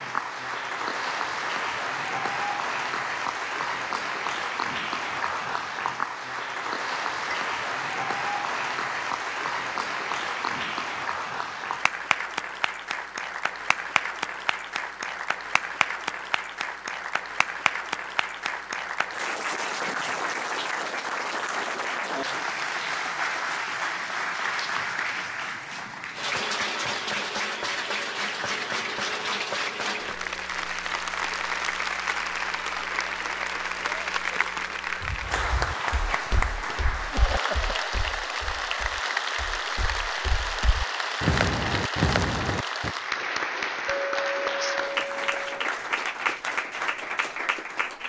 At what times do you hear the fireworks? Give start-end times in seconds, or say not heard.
not heard.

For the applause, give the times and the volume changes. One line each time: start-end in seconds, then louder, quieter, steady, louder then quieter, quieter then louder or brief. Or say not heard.
0.0-48.0 steady.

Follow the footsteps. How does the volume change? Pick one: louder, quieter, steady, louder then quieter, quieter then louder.
quieter then louder.